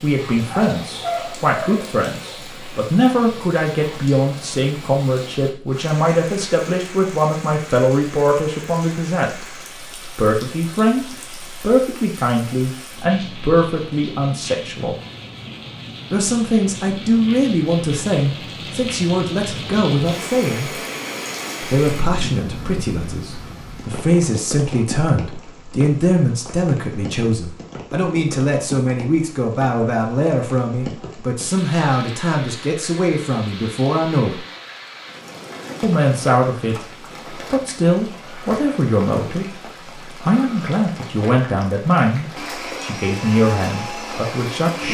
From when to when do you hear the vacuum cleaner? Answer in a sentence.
The vacuum cleaner can be heard from 42.4 to 44.8 s.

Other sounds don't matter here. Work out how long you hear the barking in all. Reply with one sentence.
You can hear the barking for 2 seconds altogether.